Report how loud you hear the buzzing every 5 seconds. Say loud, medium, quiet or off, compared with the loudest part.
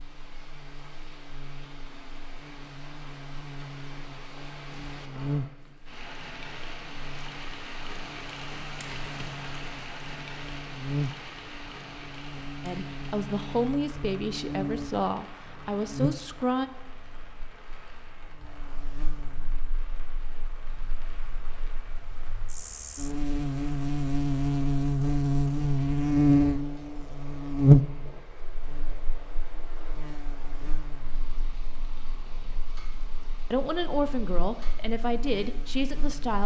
quiet, quiet, quiet, quiet, medium, loud, quiet, quiet.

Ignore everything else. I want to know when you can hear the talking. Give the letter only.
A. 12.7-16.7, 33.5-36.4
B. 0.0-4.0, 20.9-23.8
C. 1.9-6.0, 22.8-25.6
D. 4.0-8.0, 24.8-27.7
A.